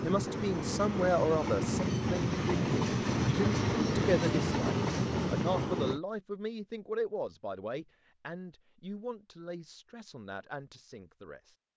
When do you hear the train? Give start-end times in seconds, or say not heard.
0.0-6.0.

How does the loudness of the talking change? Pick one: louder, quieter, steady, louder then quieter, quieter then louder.
quieter.